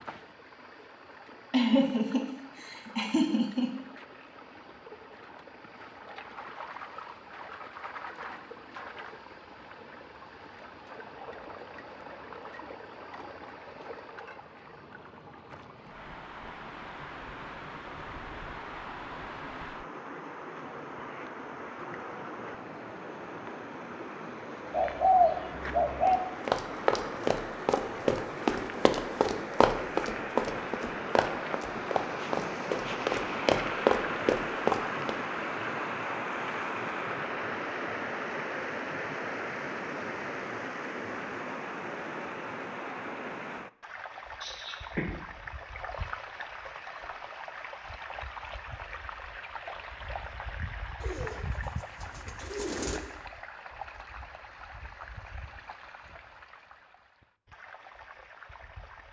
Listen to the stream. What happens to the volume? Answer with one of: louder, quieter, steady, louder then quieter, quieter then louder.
louder then quieter.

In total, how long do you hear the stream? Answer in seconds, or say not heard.
59 s.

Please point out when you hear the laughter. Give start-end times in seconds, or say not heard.
1.5-3.7, 44.4-45.0.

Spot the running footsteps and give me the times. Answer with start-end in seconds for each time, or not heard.
26.1-35.1.